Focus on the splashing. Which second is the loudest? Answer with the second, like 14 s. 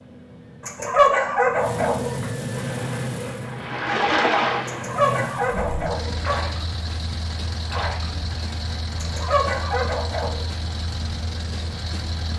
4 s.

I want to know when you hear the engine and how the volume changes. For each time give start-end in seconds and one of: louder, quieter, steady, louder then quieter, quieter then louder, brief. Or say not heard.
0.0-12.3 steady.